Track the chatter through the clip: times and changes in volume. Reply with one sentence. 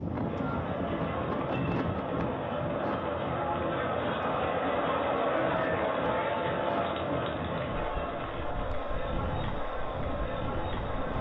The chatter can be heard from 0.0 to 11.1 s, getting louder then quieter.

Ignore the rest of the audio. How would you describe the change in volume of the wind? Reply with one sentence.
The volume of the wind goes down.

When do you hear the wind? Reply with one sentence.
The wind can be heard from 0.0 to 11.1 s.